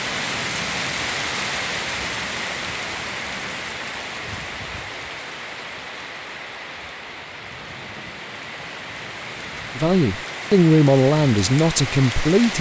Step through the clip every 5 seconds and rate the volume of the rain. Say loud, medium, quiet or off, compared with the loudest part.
loud, medium, loud.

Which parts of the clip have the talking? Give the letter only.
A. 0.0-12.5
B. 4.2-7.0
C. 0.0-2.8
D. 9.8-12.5
D.